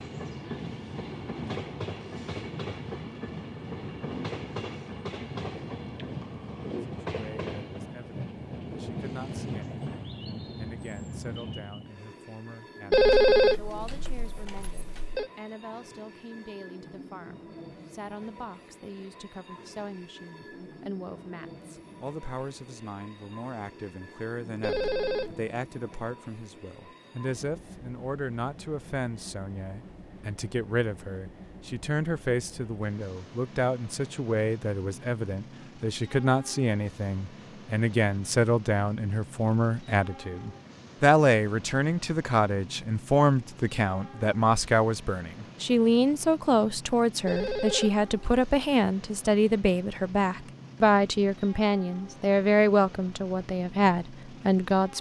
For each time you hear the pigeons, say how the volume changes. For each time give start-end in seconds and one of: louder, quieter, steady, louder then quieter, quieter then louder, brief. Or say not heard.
not heard.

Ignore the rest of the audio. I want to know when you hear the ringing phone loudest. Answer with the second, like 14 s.
13 s.